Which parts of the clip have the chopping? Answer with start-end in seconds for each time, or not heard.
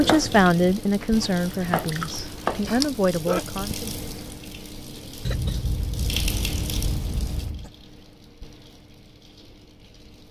0.0-2.6.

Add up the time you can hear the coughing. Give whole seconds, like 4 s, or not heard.
3 s.